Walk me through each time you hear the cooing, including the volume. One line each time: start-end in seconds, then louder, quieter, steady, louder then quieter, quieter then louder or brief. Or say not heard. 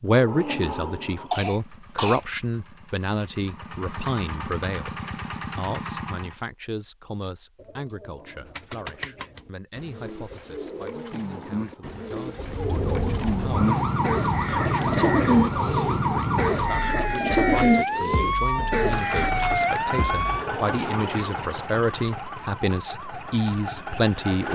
7.5-19.3 louder.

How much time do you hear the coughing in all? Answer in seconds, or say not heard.
2 s.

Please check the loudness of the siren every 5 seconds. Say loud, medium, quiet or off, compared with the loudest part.
off, off, loud, loud, medium.